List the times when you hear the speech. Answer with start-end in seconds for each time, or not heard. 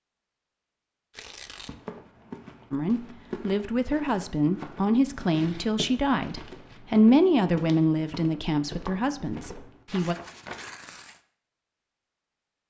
2.7-10.2.